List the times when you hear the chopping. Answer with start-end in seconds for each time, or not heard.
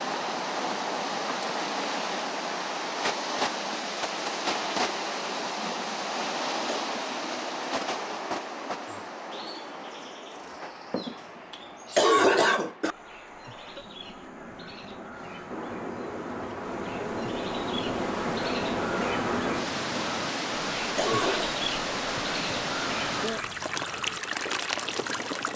not heard.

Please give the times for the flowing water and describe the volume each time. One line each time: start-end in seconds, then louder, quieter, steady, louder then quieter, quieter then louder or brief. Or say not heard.
0.0-25.5 quieter then louder.